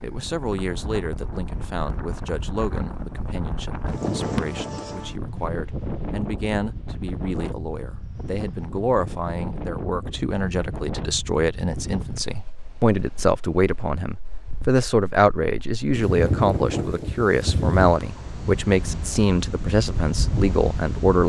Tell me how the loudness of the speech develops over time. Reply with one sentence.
The loudness of the speech goes up.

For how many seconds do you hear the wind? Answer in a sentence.
The wind can be heard for 21 seconds in total.